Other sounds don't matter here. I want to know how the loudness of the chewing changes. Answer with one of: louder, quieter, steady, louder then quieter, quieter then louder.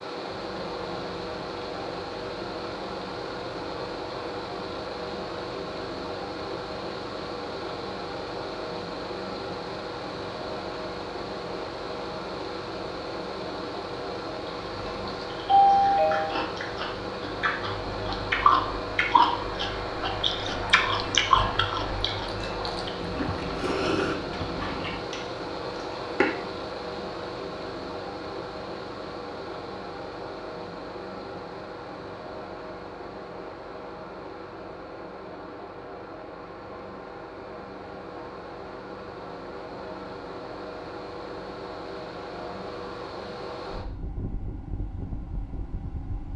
louder then quieter.